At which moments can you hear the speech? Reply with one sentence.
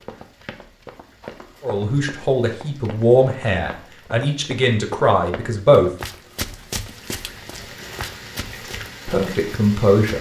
You can hear the speech from 1.6 to 5.9 s and from 9.1 to 10.1 s.